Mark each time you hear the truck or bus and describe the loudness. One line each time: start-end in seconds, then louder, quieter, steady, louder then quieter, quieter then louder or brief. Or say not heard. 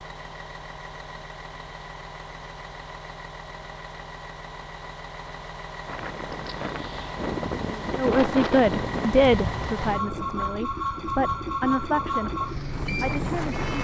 0.0-13.7 louder.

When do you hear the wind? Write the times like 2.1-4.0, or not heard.
5.8-13.7.